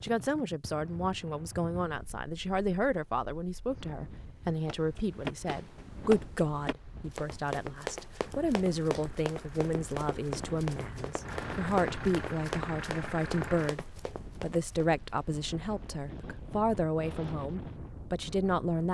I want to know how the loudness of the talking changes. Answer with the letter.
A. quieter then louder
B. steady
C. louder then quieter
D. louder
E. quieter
B.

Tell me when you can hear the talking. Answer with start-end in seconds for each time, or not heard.
0.0-18.8.